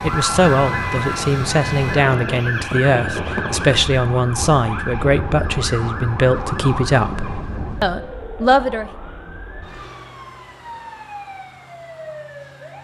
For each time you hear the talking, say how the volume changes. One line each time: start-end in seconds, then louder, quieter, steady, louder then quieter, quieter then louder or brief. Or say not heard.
0.0-8.9 steady.